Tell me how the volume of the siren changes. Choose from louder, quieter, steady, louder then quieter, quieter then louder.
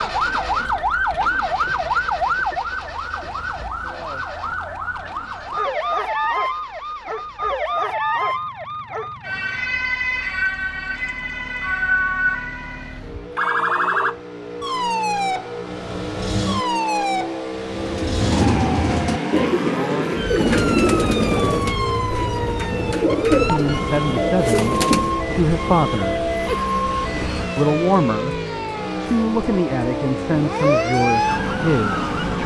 steady.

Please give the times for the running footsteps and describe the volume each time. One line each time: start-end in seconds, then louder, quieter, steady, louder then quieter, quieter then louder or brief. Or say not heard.
not heard.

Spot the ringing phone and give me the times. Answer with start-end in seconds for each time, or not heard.
26.4-27.4.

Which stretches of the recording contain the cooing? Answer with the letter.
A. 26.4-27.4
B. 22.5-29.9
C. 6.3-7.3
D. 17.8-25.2
D.